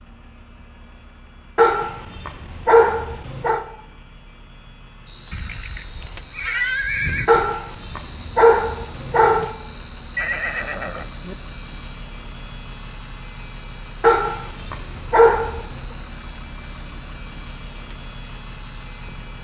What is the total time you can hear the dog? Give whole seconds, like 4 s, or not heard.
6 s.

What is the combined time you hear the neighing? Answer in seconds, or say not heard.
3 s.